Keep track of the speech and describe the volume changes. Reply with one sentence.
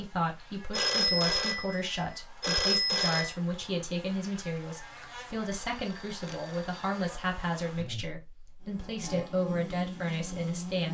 The volume of the speech stays about the same.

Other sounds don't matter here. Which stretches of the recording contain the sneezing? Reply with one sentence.
The sneezing can't be heard in this clip.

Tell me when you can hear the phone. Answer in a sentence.
The phone can be heard from 0.7 to 3.4 s and from 5.6 to 6.8 s.